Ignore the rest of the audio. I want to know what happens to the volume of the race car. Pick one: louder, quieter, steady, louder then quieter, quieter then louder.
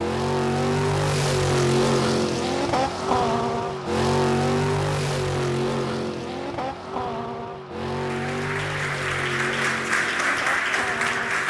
quieter.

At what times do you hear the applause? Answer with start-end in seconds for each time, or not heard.
7.8-11.4.